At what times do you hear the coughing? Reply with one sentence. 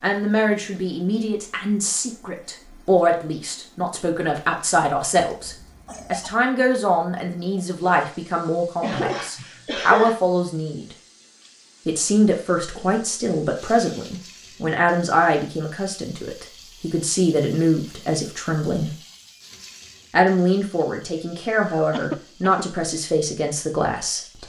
The coughing can be heard from 5.3 to 6.3 s, from 8.8 to 10.2 s and from 21.9 to 22.6 s.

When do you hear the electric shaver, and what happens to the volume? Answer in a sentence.
You can't hear the electric shaver here.